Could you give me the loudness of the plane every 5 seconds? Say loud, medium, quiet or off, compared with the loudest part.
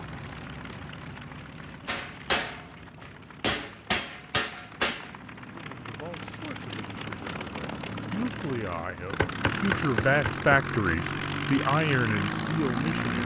quiet, medium, loud.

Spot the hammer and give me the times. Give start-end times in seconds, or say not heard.
1.9-5.1, 9.2-10.7.